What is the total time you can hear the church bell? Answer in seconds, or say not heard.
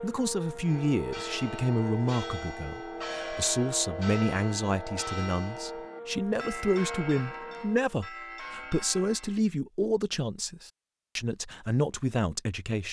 9 s.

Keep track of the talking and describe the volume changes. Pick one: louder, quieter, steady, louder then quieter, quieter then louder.
steady.